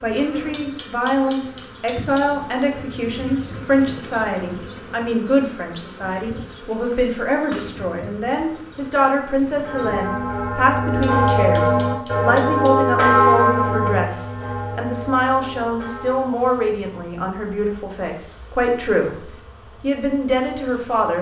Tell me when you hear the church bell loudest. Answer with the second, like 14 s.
13 s.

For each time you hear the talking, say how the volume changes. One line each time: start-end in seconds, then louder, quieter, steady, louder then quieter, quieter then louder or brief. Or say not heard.
0.0-21.1 steady.